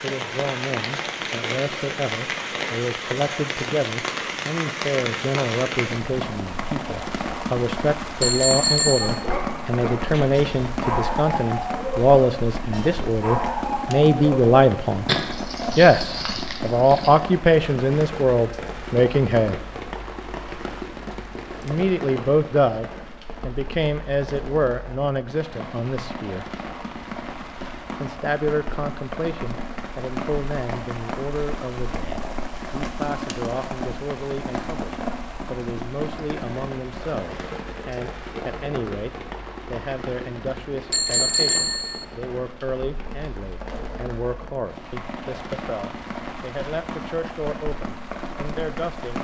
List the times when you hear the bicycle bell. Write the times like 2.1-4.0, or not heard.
8.2-9.2, 40.9-42.0.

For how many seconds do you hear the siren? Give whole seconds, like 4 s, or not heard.
not heard.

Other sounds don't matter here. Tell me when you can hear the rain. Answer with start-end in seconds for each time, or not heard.
0.0-49.1.